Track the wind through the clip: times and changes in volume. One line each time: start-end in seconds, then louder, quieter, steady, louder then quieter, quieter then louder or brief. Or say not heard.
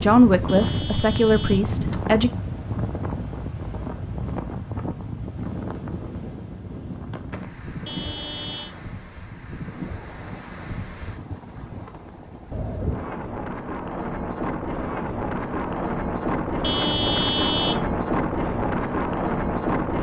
0.0-19.9 quieter then louder.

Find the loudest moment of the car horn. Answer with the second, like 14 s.
17 s.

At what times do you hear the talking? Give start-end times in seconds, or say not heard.
0.0-2.3.